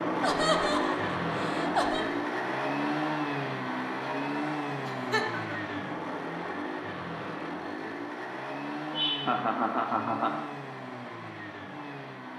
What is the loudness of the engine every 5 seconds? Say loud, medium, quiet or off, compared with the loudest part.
loud, medium, medium.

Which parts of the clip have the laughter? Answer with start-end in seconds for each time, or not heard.
0.2-2.0, 4.8-5.8, 8.9-10.4.